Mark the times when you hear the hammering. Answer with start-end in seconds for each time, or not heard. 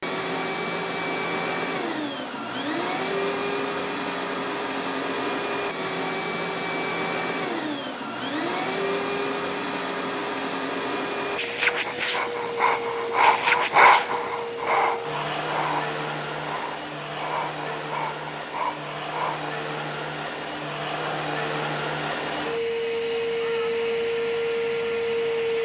not heard.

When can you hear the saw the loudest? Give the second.
14 s.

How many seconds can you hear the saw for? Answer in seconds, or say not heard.
8 s.